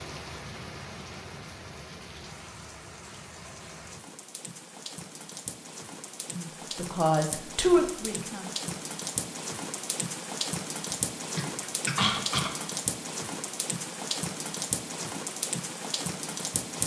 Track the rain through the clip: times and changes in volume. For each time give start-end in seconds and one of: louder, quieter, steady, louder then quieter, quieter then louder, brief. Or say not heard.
0.0-16.8 louder.